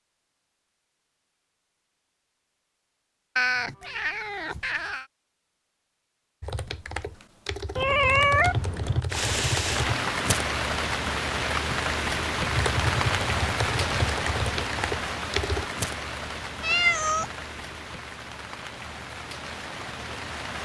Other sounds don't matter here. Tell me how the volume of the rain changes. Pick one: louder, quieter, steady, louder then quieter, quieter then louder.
quieter.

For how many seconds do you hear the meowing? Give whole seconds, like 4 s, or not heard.
4 s.